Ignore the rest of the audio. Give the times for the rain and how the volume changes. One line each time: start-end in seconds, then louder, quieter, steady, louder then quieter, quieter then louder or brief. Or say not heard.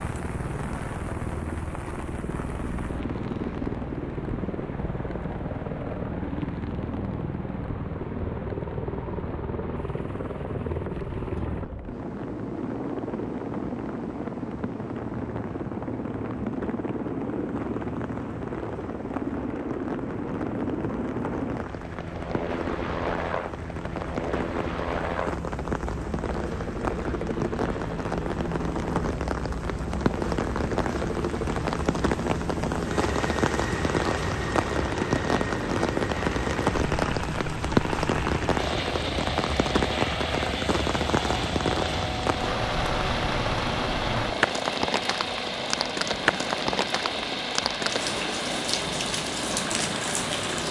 0.0-50.6 louder.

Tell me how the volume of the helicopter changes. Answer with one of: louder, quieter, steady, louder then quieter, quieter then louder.
steady.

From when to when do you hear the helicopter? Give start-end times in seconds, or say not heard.
0.0-50.6.